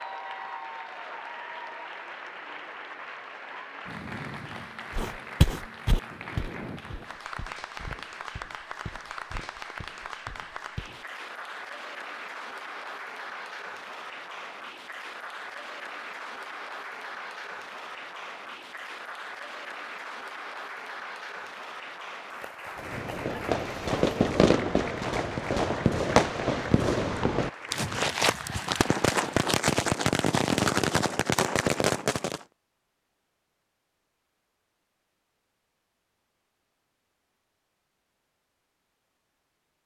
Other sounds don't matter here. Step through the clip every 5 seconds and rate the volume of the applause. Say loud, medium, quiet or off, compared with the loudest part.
loud, loud, loud, loud, loud, loud, off, off.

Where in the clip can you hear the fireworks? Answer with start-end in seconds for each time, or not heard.
22.8-32.4.